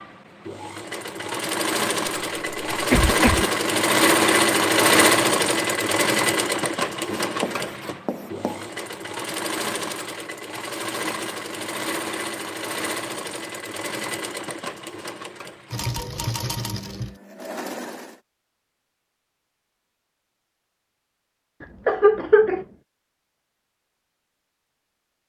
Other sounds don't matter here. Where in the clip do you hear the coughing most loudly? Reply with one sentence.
The loudest moment of the coughing is at 22 seconds.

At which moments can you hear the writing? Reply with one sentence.
You can hear the writing from 7.1 to 8.7 s.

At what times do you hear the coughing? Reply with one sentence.
The coughing can be heard from 2.7 to 3.5 s and from 21.6 to 22.6 s.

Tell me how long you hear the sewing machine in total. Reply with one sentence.
You can hear the sewing machine for 18 seconds altogether.